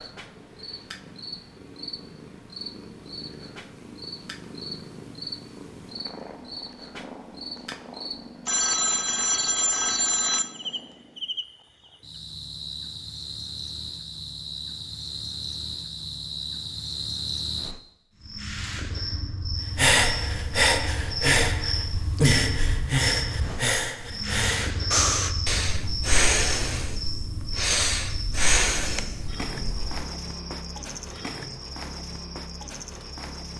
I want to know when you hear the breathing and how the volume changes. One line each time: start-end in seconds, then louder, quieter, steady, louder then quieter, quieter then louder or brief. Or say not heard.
19.8-30.0 steady.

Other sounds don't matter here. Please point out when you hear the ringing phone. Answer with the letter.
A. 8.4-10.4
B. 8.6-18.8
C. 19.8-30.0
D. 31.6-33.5
A.